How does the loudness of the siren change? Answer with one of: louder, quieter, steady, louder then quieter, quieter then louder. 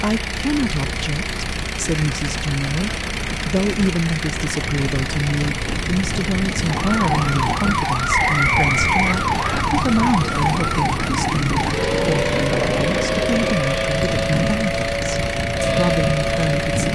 steady.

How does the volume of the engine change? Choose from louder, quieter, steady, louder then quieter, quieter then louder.
steady.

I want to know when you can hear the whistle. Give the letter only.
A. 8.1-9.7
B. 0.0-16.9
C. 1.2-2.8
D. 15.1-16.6
A.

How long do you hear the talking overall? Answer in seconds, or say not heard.
17 s.